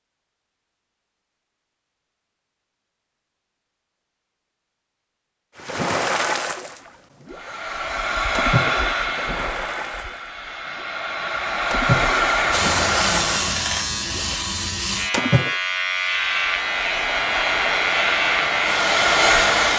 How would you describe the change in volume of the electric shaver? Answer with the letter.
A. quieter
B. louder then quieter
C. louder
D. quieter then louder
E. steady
E.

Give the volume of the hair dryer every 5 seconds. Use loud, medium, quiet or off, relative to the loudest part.
off, loud, loud, loud.